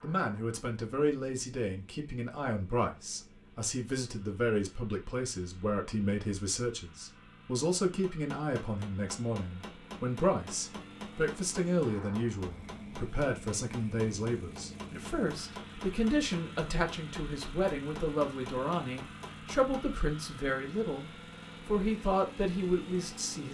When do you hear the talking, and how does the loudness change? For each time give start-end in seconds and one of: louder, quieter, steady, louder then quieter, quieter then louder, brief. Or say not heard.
0.0-23.5 steady.